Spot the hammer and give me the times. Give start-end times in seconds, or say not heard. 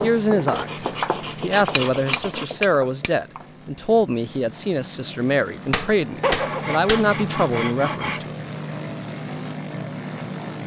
1.6-3.1, 5.7-7.1.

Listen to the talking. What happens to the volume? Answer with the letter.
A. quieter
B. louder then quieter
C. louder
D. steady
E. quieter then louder
D.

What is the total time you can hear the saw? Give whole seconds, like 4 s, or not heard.
4 s.